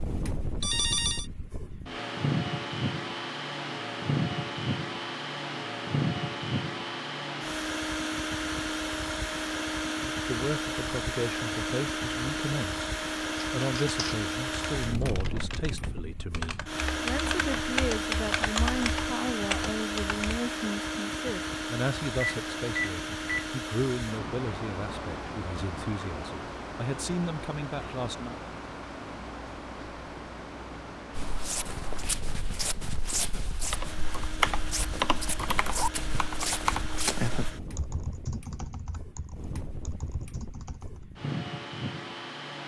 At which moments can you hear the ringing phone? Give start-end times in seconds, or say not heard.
0.6-1.2, 22.2-23.5.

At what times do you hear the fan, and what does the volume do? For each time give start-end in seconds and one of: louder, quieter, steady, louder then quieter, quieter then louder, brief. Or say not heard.
0.0-42.6 quieter.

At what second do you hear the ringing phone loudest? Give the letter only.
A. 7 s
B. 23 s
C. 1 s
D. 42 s
C.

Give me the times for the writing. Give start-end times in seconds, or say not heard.
not heard.